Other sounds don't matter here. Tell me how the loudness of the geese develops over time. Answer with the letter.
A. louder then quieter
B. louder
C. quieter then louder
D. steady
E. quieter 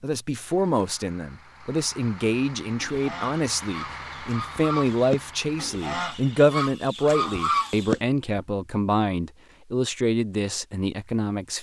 B.